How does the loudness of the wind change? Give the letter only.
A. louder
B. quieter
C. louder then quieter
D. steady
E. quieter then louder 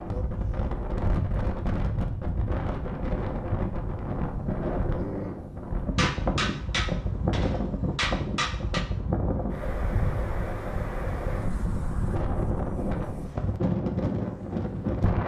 D.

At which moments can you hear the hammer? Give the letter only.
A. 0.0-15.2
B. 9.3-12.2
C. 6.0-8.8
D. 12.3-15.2
C.